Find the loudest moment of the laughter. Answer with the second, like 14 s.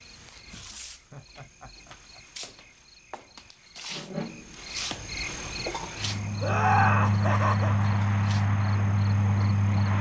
7 s.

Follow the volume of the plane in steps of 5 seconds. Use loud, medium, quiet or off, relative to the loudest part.
off, loud.